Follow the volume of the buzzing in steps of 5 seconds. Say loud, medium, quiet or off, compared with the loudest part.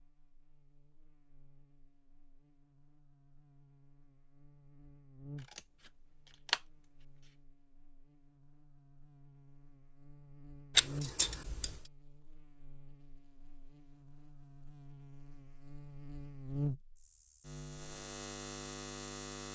quiet, quiet, medium, loud.